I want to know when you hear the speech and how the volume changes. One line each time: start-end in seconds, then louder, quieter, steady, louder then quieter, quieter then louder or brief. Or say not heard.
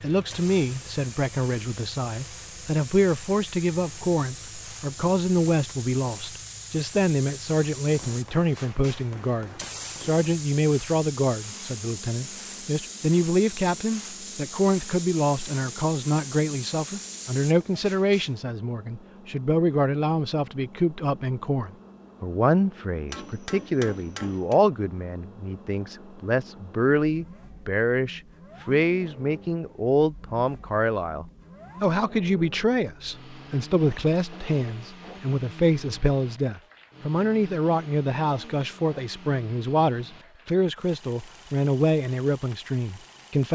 0.0-43.5 steady.